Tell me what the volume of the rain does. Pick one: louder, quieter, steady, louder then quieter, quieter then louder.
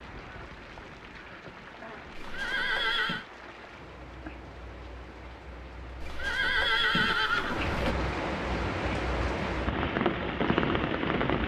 louder.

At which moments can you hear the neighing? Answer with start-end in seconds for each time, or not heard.
2.1-3.2, 6.0-8.0.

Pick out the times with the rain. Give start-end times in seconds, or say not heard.
0.0-11.4.